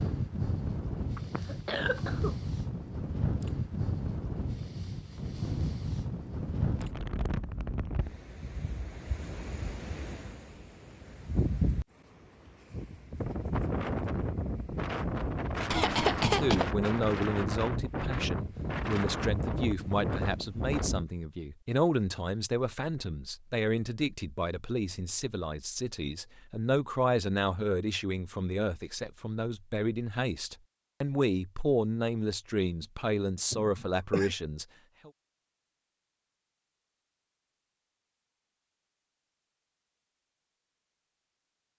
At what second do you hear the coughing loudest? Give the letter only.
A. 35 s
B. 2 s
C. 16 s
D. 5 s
C.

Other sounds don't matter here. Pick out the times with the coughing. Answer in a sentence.
You can hear the coughing from 1.1 to 2.4 s, from 15.7 to 16.6 s and from 33.5 to 34.4 s.